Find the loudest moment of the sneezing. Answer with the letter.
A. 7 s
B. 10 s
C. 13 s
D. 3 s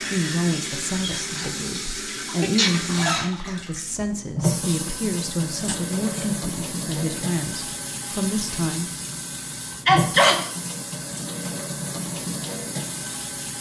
B.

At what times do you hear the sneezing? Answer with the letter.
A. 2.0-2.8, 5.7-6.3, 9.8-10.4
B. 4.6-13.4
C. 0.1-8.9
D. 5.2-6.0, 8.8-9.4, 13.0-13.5
A.